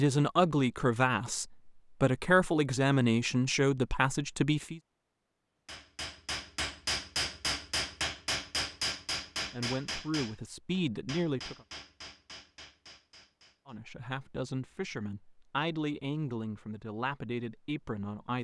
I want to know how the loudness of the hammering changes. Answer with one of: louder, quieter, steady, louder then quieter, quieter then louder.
quieter.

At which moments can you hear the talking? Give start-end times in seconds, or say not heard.
0.0-4.8, 9.5-11.7, 13.7-18.3.